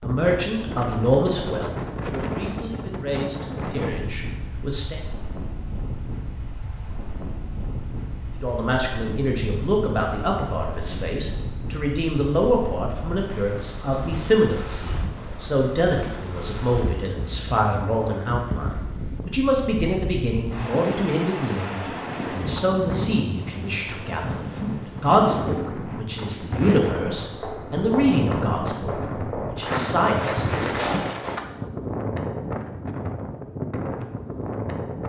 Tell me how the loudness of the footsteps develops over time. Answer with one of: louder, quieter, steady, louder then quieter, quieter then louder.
louder.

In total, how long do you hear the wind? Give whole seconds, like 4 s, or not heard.
35 s.